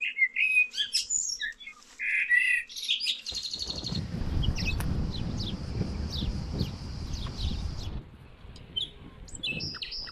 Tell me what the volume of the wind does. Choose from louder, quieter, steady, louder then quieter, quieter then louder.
quieter.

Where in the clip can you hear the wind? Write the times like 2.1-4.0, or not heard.
3.3-10.0.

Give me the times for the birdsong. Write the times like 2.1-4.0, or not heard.
0.0-10.0.